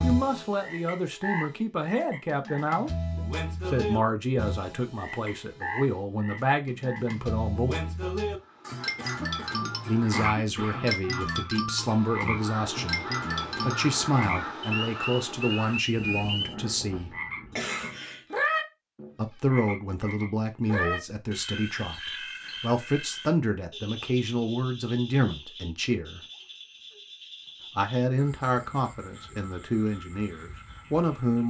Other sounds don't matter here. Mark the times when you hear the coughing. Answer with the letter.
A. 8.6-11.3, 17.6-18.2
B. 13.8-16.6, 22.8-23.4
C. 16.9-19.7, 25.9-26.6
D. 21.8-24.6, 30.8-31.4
A.